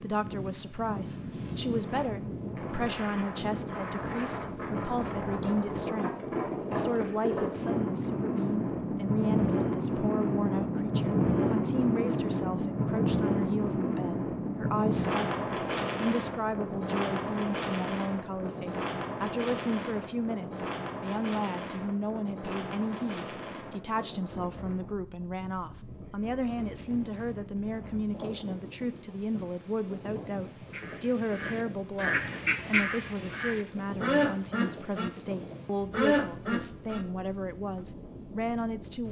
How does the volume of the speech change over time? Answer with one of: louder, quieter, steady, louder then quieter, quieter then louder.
steady.